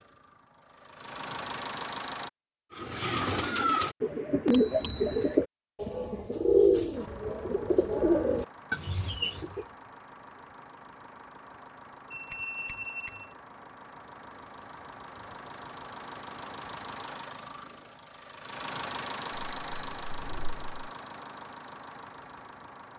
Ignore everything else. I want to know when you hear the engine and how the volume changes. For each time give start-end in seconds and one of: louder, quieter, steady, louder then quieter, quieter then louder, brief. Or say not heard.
0.0-2.3 brief
7.0-22.9 louder.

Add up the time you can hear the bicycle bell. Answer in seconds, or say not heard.
3 s.